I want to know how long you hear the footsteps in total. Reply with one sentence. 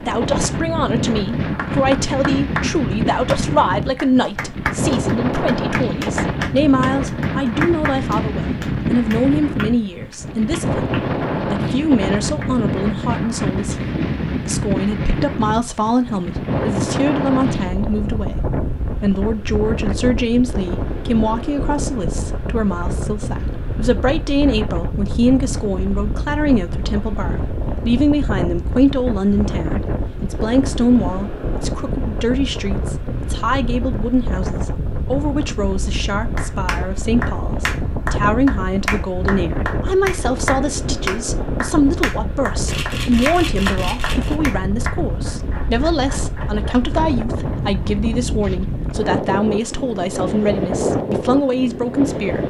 You can't hear the footsteps here.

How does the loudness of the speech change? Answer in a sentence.
The volume of the speech stays about the same.